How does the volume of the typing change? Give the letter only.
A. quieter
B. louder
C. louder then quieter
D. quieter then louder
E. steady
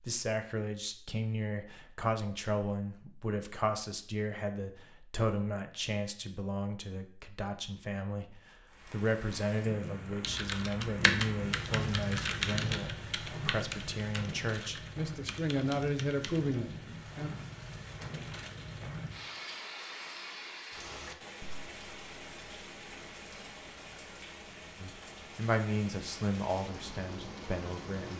A.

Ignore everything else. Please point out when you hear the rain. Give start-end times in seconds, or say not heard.
8.7-28.1.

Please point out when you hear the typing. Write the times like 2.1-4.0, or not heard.
10.2-17.1.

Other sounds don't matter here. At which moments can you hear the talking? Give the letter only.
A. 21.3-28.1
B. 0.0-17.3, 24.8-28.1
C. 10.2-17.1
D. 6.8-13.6
B.